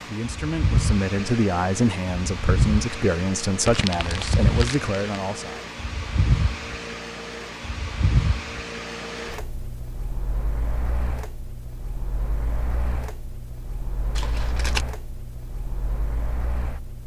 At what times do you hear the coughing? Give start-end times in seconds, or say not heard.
not heard.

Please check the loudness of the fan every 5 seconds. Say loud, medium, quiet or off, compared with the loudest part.
loud, loud, medium, medium.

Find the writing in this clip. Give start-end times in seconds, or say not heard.
not heard.